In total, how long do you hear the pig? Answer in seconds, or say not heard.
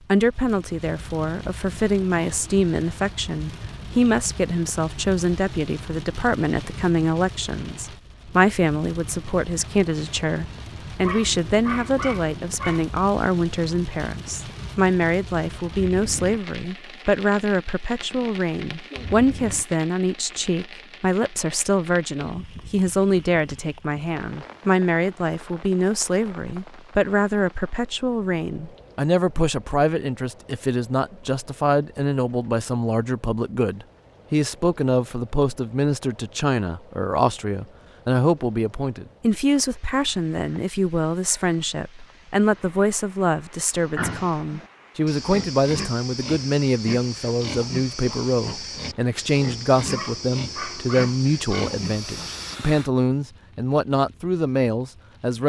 9 s.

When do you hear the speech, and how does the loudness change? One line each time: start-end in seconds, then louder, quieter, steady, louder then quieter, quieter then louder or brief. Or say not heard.
0.1-55.4 steady.